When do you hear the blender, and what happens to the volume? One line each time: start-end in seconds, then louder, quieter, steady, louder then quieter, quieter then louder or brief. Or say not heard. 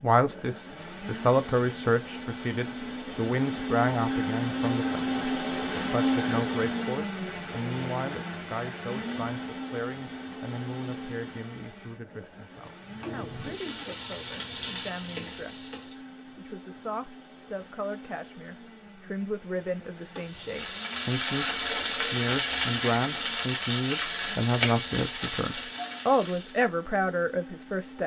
0.0-28.0 quieter.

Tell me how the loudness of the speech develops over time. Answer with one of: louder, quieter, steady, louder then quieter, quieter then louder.
quieter then louder.